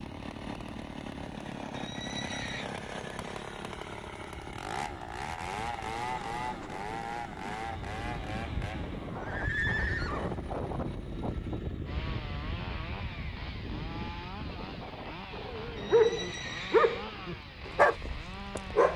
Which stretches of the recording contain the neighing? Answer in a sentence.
You can hear the neighing from 1.7 to 2.7 s, from 8.3 to 10.4 s and from 15.8 to 17.1 s.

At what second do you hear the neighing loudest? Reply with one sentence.
The loudest moment of the neighing is at 10 seconds.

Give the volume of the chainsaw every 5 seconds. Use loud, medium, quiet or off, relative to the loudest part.
loud, loud, medium, medium.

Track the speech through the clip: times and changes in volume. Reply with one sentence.
The speech can't be heard in this clip.